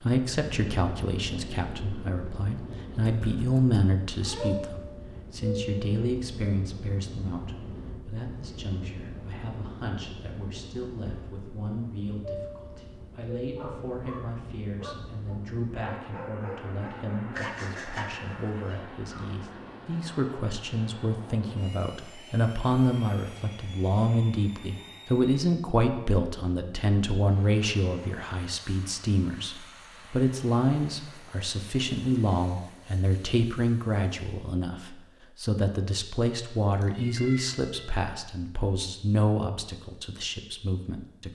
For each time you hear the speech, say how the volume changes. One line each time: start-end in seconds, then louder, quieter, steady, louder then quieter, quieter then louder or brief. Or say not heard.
0.0-41.3 quieter then louder.